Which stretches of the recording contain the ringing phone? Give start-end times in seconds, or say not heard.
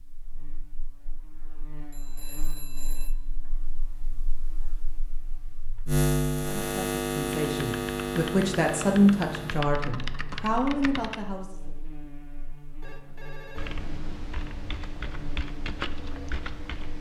1.9-3.1, 12.8-14.2.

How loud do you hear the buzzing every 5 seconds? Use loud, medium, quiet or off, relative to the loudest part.
quiet, loud, quiet, quiet.